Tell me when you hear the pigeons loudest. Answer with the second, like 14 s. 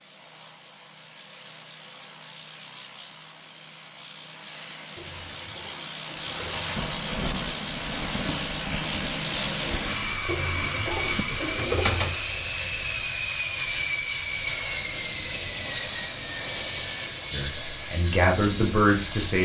12 s.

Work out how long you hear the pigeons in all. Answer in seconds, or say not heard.
4 s.